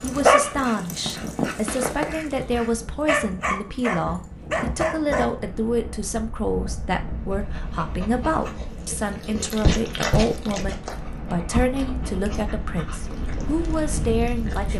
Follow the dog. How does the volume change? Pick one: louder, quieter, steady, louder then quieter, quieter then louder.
quieter.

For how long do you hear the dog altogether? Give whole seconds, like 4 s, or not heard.
13 s.